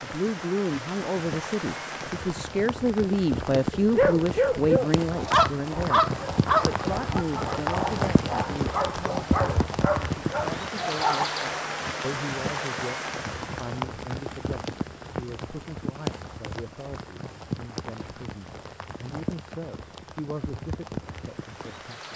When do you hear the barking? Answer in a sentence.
The barking can be heard from 3.8 to 11.2 s.